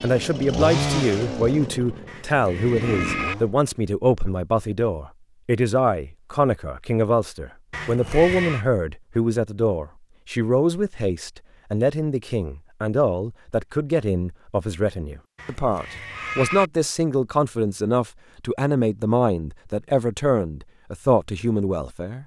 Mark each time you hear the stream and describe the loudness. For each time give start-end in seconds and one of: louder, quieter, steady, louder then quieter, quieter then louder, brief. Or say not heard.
not heard.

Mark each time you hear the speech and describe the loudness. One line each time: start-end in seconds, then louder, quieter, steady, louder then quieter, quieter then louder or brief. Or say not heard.
0.0-22.2 steady.